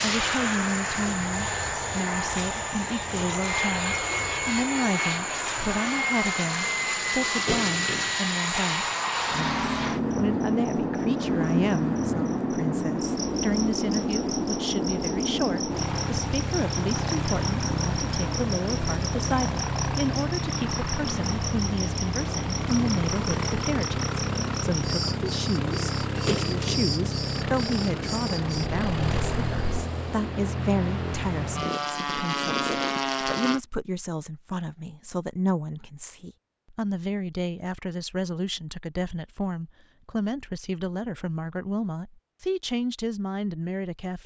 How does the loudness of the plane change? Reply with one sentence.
The volume of the plane stays about the same.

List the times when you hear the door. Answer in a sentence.
The door can be heard from 7.3 to 8.2 s and from 26.1 to 26.9 s.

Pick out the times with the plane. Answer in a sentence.
The plane can be heard from 0.0 to 33.6 s.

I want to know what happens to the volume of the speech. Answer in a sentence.
The volume of the speech stays about the same.